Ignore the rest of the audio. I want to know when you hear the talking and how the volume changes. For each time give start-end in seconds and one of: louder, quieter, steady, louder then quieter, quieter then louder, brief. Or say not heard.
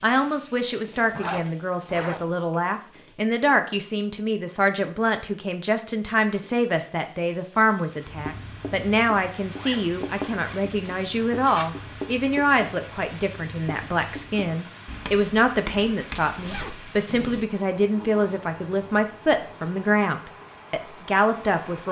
0.0-21.8 steady.